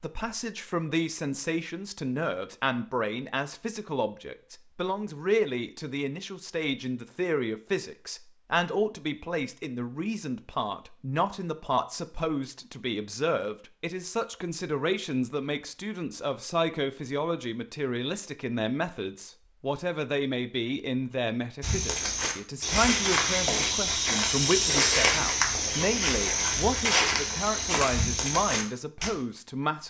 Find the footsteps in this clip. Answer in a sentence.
You can hear the footsteps from 21.6 to 29.1 s.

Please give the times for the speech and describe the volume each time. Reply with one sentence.
The speech can be heard from 0.0 to 29.8 s, at a steady volume.